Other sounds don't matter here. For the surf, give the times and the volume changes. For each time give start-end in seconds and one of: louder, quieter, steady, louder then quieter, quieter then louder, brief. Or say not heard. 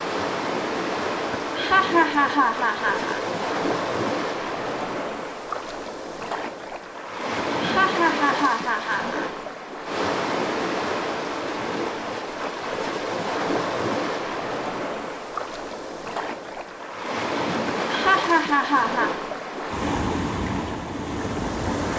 0.0-21.9 steady.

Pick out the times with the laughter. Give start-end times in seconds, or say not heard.
1.3-3.2, 7.6-9.2, 17.6-19.1.